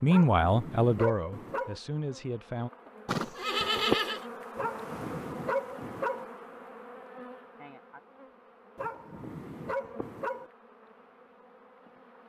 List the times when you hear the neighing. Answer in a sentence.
The neighing can be heard from 3.0 to 4.2 s.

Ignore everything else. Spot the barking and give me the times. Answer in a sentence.
The barking can be heard from 0.1 to 1.8 s, from 4.5 to 6.2 s and from 8.8 to 10.5 s.